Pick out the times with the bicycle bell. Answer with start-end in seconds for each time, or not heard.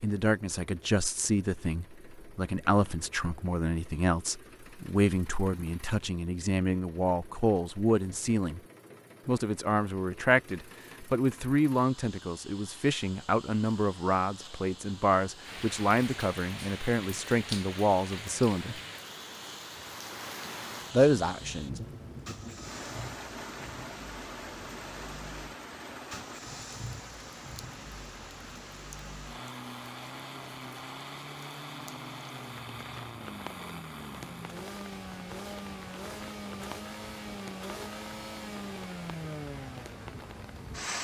not heard.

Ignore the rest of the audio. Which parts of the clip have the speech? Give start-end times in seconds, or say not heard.
0.0-8.6, 9.2-18.8, 20.9-21.8.